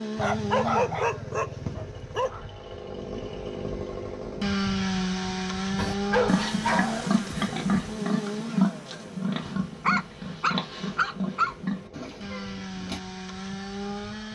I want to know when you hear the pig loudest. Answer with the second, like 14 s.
9 s.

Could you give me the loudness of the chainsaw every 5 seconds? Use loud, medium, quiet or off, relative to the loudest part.
loud, loud, medium.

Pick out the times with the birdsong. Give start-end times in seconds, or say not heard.
not heard.